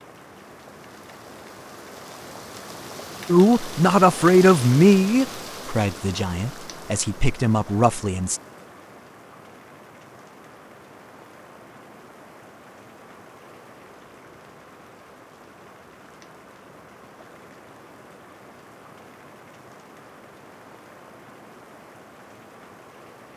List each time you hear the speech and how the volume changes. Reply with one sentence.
The speech can be heard from 3.2 to 8.4 s, getting quieter then louder.